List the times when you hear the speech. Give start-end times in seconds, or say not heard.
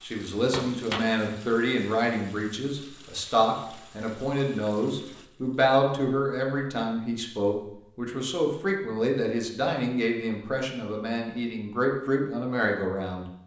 0.0-13.2.